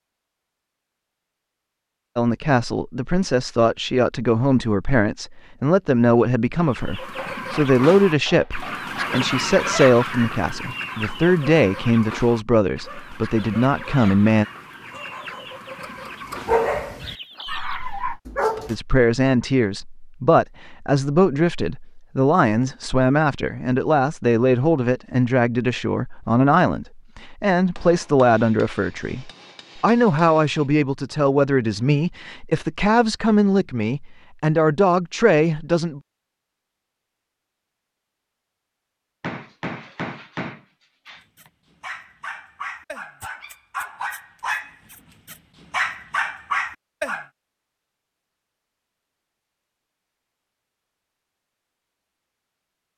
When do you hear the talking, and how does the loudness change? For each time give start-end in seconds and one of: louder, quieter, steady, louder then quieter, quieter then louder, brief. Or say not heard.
2.1-14.4 steady
18.6-36.0 steady.